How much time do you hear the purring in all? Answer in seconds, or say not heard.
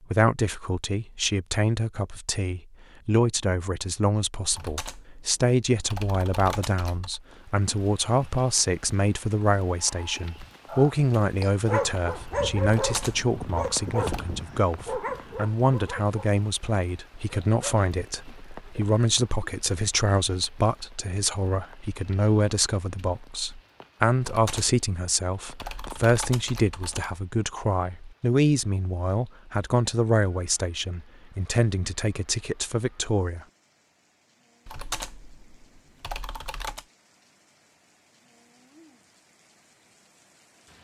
not heard.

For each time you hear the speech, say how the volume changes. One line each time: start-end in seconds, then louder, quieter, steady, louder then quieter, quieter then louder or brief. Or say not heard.
0.1-33.5 steady.